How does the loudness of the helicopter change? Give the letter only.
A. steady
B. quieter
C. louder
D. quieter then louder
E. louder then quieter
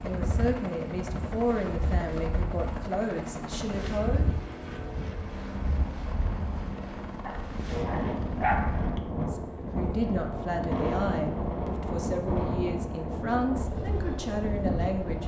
A.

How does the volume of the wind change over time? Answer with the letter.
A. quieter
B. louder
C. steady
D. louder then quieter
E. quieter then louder
B.